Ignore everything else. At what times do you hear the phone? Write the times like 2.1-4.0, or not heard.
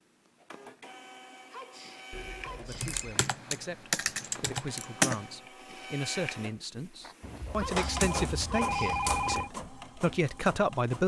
2.1-3.2, 7.2-9.5.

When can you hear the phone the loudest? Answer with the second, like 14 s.
9 s.